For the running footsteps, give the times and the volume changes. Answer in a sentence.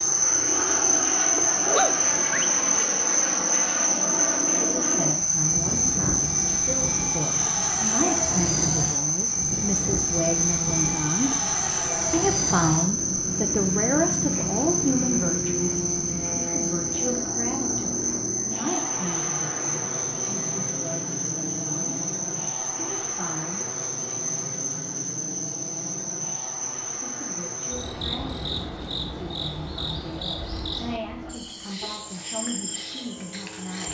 You can't hear the running footsteps here.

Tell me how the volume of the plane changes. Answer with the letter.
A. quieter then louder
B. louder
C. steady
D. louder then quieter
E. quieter
E.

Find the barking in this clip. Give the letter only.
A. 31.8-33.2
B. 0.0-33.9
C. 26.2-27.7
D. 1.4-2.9
D.